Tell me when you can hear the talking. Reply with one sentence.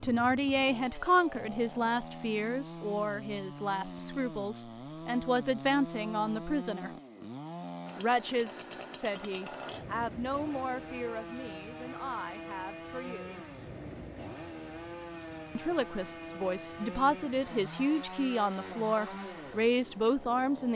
The talking can be heard from 0.0 to 6.9 s, from 8.0 to 13.4 s and from 15.6 to 20.7 s.